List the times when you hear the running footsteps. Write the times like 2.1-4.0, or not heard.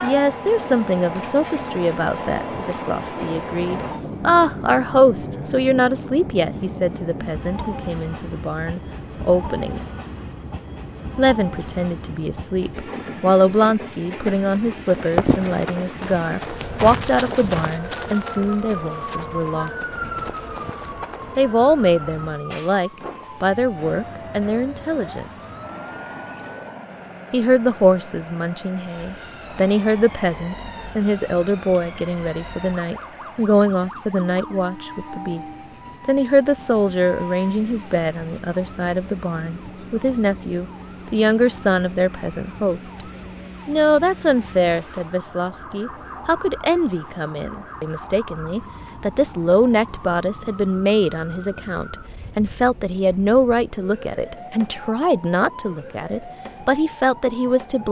14.5-21.4.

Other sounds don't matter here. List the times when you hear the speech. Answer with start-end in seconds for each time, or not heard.
0.0-9.8, 11.2-19.7, 21.4-25.4, 27.3-43.0, 43.6-57.8.